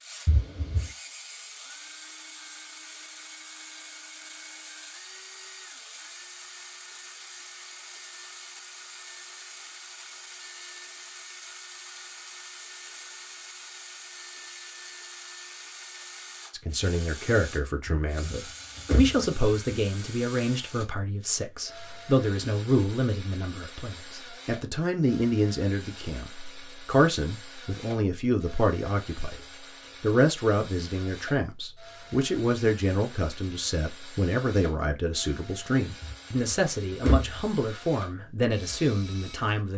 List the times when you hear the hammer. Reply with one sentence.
You can't hear the hammer here.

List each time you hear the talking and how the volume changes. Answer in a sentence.
You can hear the talking from 16.5 to 29.4 s, at a steady volume; and from 30.0 to 39.7 s, at a steady volume.